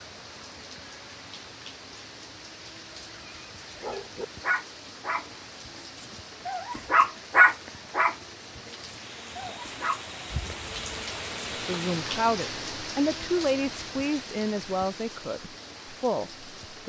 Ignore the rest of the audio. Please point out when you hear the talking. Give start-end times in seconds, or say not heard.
11.7-16.8.